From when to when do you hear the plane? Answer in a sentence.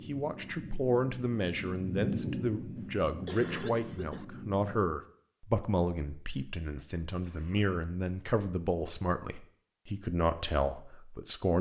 The plane can be heard from 0.0 to 5.0 s.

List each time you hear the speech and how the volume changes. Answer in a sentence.
You can hear the speech from 0.1 to 11.5 s, at a steady volume.